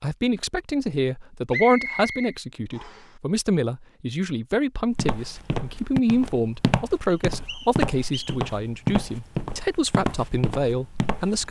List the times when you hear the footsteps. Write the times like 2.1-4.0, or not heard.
5.0-11.4.